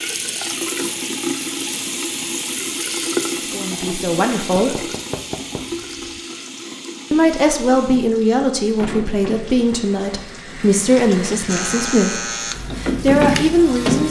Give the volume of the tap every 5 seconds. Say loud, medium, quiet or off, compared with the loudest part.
loud, medium, loud.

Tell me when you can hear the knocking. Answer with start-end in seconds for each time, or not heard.
4.5-6.0.